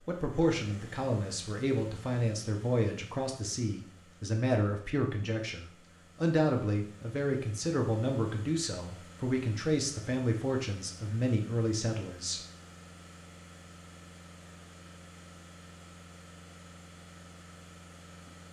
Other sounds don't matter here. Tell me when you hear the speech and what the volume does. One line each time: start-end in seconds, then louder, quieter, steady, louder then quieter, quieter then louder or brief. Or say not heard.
0.0-12.4 steady.